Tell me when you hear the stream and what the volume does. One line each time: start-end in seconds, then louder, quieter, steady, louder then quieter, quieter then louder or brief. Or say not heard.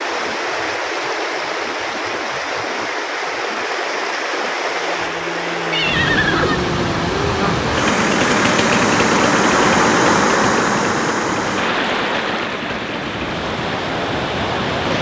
0.0-14.9 louder then quieter.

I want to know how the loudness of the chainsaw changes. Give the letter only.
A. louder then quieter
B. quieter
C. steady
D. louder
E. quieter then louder
A.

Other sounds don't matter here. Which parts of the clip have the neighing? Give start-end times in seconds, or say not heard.
5.7-6.6.